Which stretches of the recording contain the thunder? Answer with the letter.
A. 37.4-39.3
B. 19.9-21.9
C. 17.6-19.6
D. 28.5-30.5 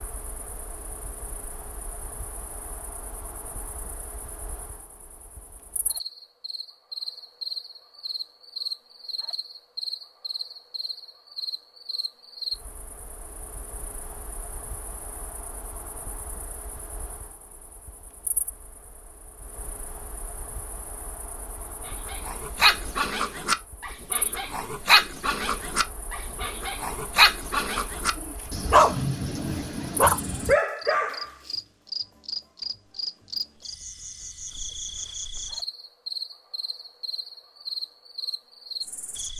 D.